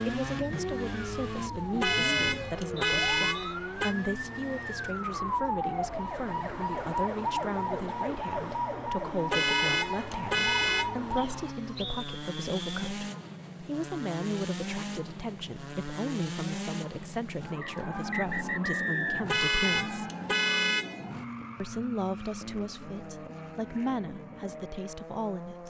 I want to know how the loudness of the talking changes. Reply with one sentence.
The loudness of the talking stays about the same.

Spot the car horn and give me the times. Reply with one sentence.
You can hear the car horn from 1.8 to 4.0 s, from 9.3 to 10.9 s and from 19.2 to 21.1 s.